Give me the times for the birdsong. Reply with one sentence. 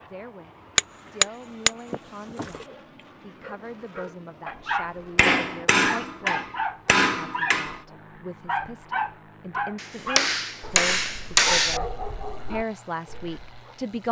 The birdsong can't be heard in this clip.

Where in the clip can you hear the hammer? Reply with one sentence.
You can hear the hammer from 0.8 to 2.6 s, from 5.2 to 7.8 s and from 9.8 to 11.8 s.